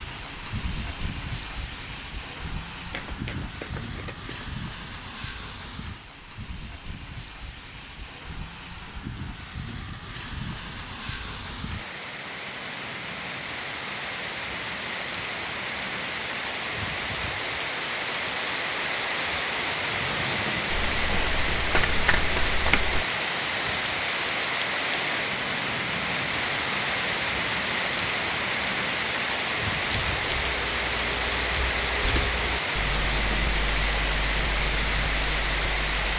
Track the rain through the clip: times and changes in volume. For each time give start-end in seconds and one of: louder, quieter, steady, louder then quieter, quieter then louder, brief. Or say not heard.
0.0-36.1 louder.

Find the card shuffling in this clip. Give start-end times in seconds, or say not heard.
2.9-4.5, 20.8-23.1.